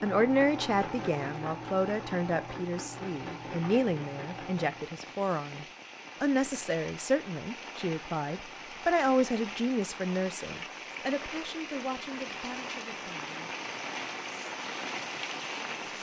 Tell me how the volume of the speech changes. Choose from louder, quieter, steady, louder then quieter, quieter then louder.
quieter.